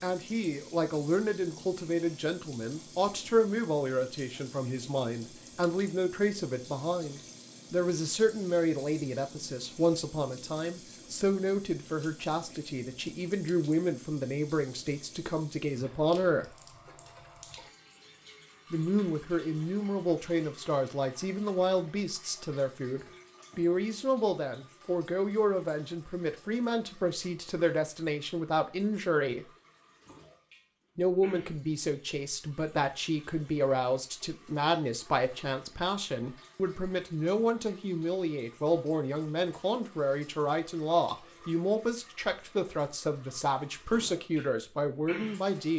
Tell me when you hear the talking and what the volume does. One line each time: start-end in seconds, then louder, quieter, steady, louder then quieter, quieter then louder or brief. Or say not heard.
0.0-16.5 steady
18.7-29.4 steady
30.9-45.7 steady.